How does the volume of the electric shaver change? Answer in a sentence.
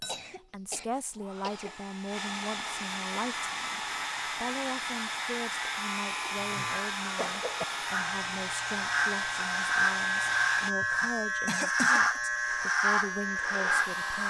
The loudness of the electric shaver goes up.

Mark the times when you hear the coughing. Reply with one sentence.
The coughing can be heard from 0.1 to 1.8 s, from 6.2 to 7.7 s and from 10.8 to 12.2 s.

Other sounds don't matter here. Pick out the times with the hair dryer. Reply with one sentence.
You can hear the hair dryer from 0.0 to 10.8 s and from 12.4 to 14.2 s.